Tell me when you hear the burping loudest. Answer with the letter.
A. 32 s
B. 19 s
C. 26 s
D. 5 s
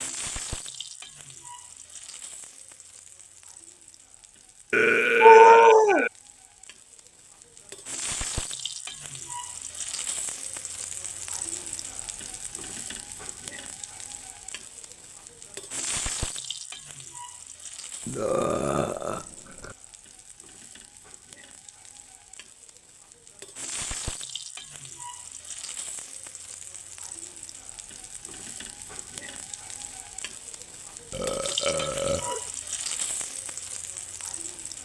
D.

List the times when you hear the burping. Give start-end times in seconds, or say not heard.
4.7-6.1, 18.1-19.8, 31.1-32.4.